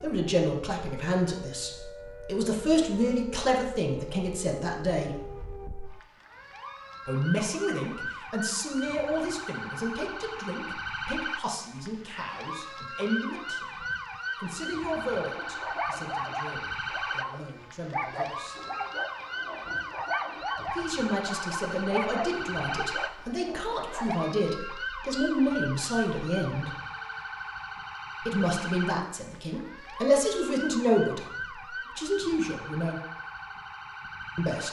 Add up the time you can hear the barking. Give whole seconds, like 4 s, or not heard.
9 s.